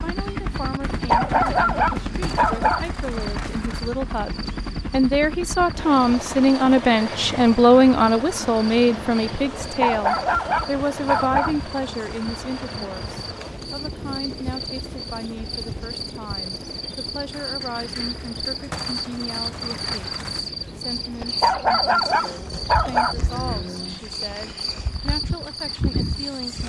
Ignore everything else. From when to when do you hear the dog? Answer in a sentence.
You can hear the dog from 0.9 to 2.8 s, from 9.6 to 11.6 s and from 21.2 to 23.1 s.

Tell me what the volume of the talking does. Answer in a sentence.
The loudness of the talking goes up, then down.